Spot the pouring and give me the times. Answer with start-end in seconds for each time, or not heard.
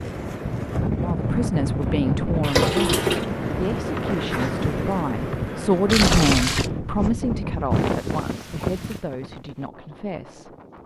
2.4-3.2, 5.8-6.7.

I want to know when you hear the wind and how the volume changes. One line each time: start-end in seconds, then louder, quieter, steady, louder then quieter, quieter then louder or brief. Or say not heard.
0.0-10.8 quieter.